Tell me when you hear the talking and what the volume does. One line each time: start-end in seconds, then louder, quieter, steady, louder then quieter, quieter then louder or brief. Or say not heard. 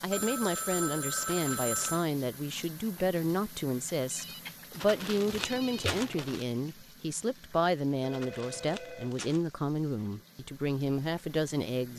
0.0-11.9 steady.